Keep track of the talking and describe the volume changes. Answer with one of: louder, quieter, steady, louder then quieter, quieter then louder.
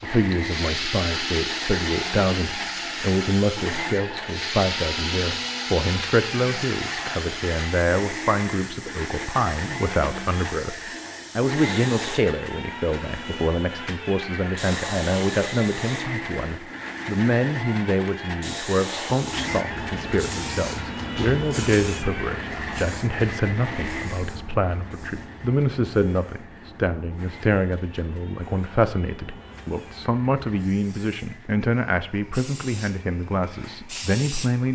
steady.